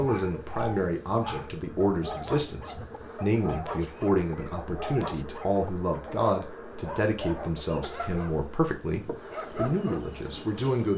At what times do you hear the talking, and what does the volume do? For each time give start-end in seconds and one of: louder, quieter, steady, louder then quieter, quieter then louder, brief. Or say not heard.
0.0-10.9 steady.